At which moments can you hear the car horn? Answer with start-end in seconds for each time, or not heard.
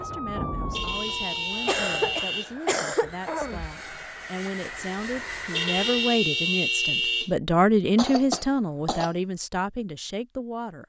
0.7-2.5, 5.5-7.3.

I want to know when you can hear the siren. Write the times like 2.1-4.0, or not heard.
0.0-2.1.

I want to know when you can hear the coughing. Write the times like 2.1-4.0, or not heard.
1.6-3.6, 8.0-9.1.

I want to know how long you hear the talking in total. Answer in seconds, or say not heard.
11 s.